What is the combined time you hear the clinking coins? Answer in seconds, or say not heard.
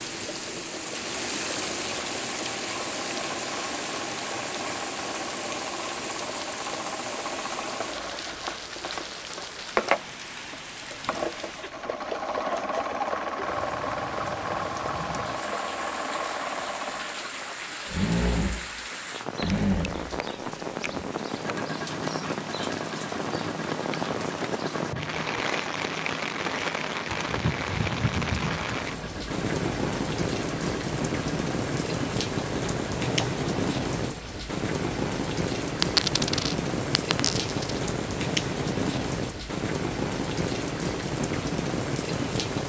2 s.